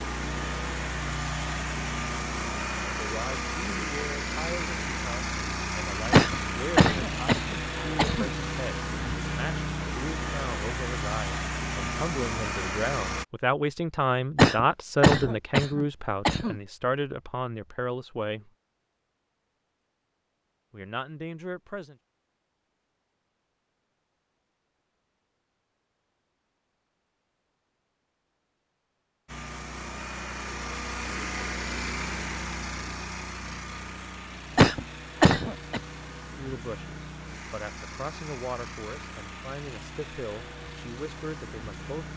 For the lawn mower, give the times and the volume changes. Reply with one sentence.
The lawn mower can be heard from 0.0 to 13.2 s, at a steady volume; and from 29.2 to 42.1 s, getting quieter.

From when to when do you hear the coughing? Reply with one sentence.
The coughing can be heard from 6.1 to 8.3 s, from 14.3 to 16.6 s and from 34.5 to 35.8 s.